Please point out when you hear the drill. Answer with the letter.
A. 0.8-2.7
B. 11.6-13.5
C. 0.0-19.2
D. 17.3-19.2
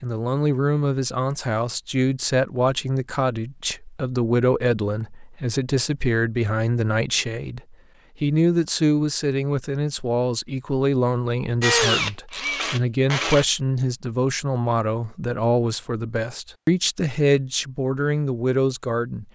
B.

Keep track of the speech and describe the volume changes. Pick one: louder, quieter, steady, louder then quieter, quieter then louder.
steady.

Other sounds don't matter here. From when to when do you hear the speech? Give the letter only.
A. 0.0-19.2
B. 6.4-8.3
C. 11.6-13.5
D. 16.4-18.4
A.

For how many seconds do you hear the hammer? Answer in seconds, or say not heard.
not heard.